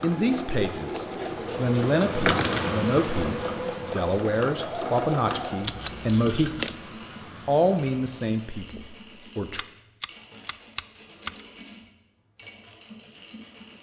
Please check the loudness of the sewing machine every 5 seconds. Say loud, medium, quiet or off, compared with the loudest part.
loud, medium, quiet.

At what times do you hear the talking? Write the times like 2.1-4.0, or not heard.
0.0-6.8, 7.5-9.7.